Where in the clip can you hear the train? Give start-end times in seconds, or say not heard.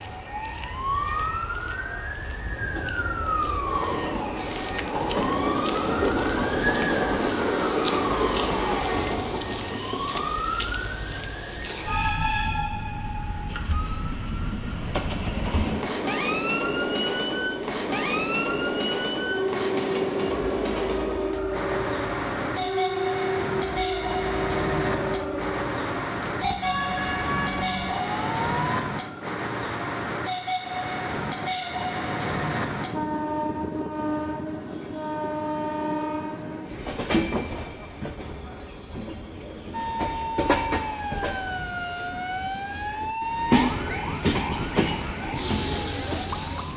0.0-46.7.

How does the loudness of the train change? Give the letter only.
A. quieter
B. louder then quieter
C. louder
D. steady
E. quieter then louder
D.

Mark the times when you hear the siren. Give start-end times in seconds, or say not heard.
0.0-28.8, 39.7-46.7.